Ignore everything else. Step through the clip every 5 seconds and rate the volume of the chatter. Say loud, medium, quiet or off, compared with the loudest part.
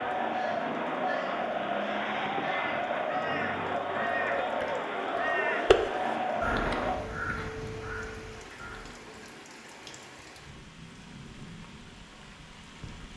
loud, loud, off.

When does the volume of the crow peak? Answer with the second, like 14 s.
6 s.